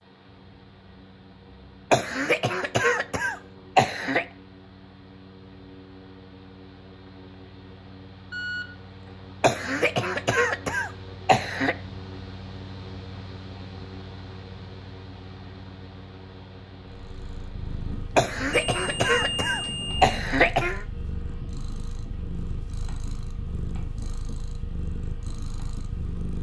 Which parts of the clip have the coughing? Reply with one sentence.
You can hear the coughing from 1.9 to 4.2 s, from 9.4 to 11.8 s and from 18.1 to 20.9 s.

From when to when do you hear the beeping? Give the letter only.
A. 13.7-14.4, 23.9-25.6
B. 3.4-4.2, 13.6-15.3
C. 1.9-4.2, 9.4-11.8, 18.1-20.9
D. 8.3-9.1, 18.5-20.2
D.